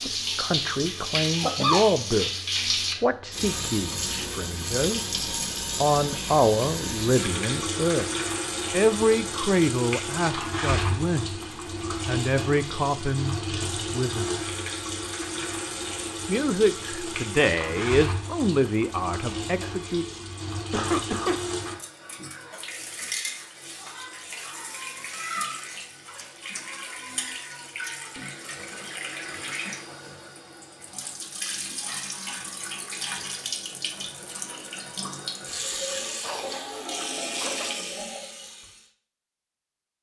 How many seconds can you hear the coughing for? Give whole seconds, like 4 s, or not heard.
3 s.